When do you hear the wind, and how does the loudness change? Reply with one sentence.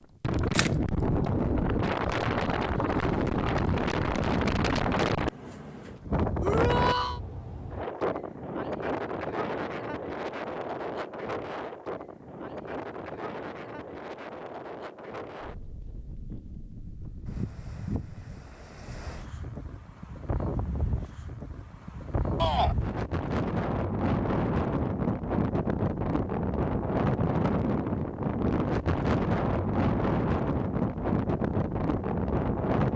The wind can be heard from 0.2 to 32.9 s, getting quieter then louder.